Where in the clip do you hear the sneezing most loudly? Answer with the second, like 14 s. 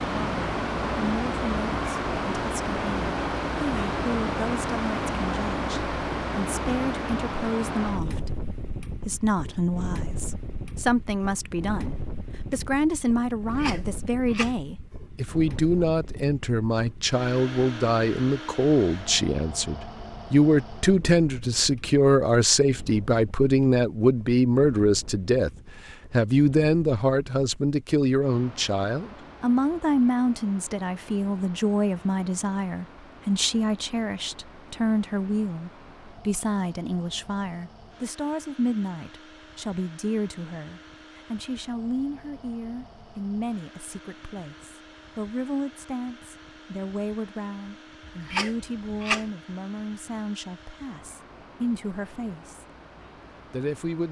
49 s.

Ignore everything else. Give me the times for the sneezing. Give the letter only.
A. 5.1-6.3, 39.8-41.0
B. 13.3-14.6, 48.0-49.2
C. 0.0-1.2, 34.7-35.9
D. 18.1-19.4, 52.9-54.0
B.